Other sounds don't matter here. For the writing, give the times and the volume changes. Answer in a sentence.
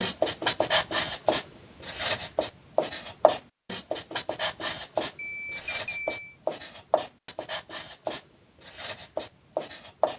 You can hear the writing from 0.0 to 10.1 s, getting quieter.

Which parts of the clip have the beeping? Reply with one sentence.
You can hear the beeping from 5.2 to 6.3 s.